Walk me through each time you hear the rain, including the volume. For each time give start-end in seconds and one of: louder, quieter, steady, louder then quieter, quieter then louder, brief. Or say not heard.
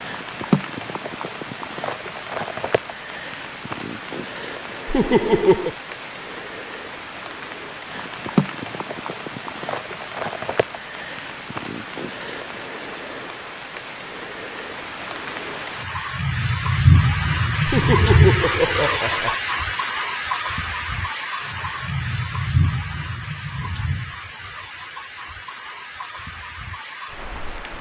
0.0-27.7 louder then quieter.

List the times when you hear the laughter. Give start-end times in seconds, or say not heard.
4.8-5.8, 17.6-19.4.